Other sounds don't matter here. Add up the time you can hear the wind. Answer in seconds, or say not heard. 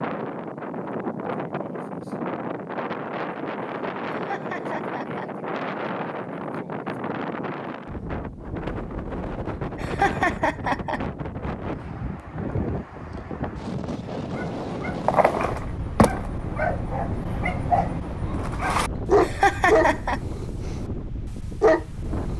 22 s.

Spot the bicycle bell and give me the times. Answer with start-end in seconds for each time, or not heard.
not heard.